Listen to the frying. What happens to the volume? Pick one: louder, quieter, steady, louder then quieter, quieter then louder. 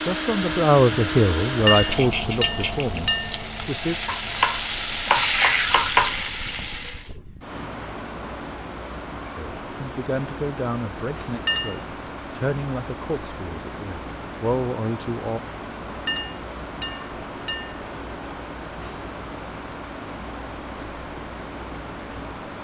louder.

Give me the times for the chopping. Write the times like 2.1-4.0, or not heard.
4.0-6.2.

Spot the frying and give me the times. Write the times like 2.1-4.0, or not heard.
0.0-7.2.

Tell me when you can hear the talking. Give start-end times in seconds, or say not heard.
0.0-4.0, 9.3-15.4.